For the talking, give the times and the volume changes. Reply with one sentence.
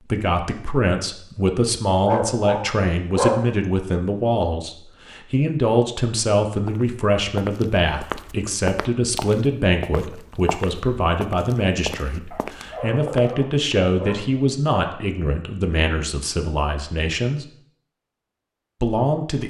The talking can be heard from 0.1 to 17.4 s, at a steady volume; and briefly from 18.8 to 19.4 s.